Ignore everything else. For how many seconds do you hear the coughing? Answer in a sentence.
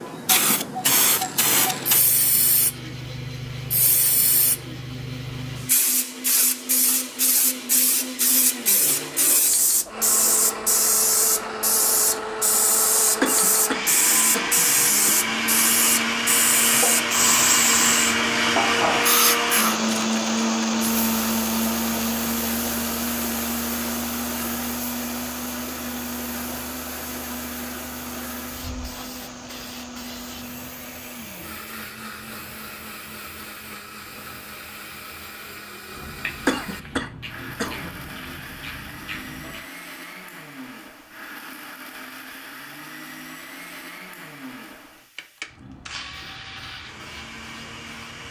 You can hear the coughing for 4 seconds altogether.